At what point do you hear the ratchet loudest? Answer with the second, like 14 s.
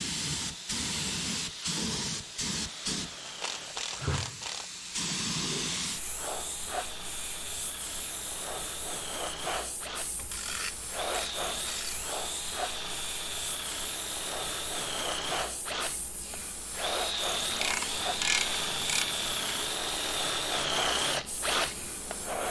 18 s.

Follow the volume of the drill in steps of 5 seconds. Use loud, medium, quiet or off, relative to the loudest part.
quiet, medium, medium, loud, loud.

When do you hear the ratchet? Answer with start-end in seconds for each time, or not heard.
3.2-4.8, 10.2-12.1, 17.5-19.6.